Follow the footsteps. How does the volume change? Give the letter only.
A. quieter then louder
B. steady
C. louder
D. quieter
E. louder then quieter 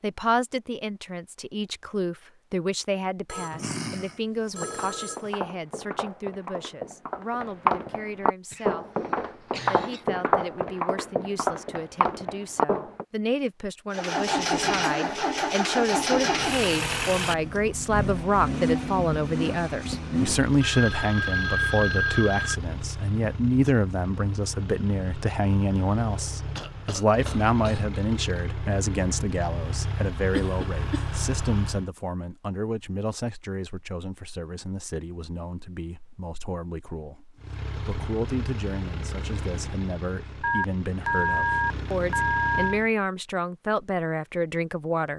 C.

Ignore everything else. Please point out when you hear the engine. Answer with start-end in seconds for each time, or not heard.
13.9-31.9, 37.4-42.9.